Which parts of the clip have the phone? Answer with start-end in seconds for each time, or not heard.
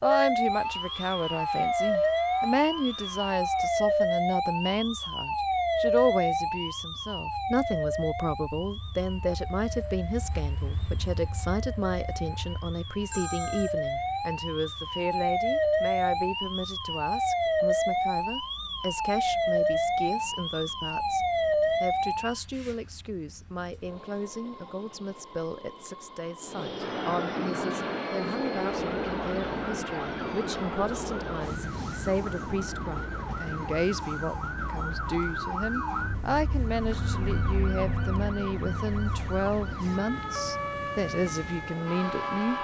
13.1-13.8.